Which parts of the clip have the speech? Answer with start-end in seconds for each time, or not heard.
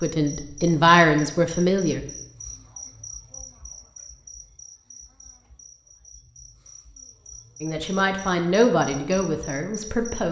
0.0-2.0, 7.6-10.2.